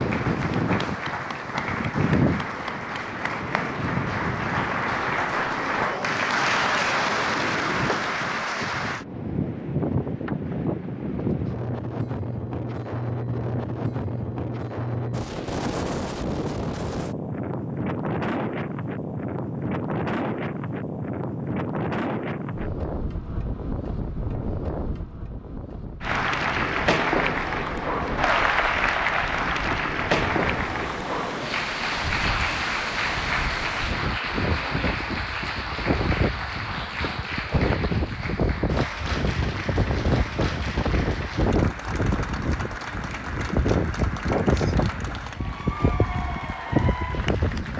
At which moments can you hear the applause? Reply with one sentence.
The applause can be heard from 0.0 to 9.1 s and from 26.0 to 47.7 s.